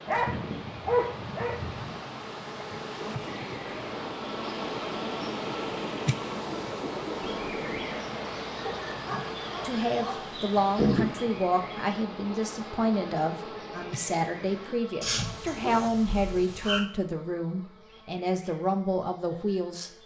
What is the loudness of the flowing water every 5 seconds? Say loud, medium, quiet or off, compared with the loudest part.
loud, loud, medium, off.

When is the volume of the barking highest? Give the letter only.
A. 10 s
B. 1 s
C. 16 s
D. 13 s
B.